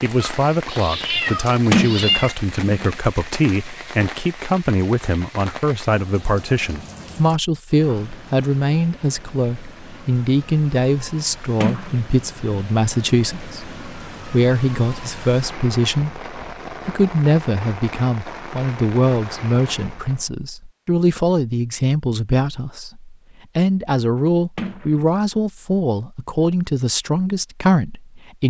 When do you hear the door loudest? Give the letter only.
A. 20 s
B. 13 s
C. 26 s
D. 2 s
D.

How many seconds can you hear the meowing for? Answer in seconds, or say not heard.
2 s.